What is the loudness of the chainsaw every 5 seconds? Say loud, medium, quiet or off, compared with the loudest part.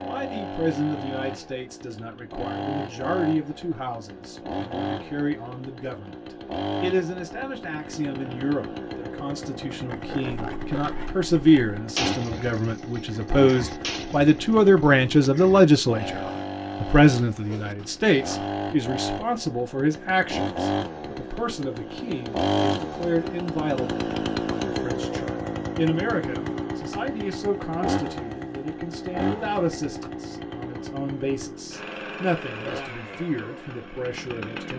medium, medium, medium, medium, loud, loud, medium.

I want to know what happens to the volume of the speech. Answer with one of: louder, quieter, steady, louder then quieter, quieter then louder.
louder then quieter.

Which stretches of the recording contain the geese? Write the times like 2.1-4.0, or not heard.
not heard.